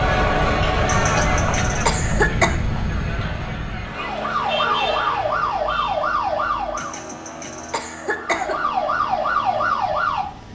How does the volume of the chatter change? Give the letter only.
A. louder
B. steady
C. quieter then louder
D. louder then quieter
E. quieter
E.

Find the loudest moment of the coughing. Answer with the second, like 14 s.
2 s.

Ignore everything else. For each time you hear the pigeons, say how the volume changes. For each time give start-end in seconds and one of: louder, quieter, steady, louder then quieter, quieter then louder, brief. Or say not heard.
not heard.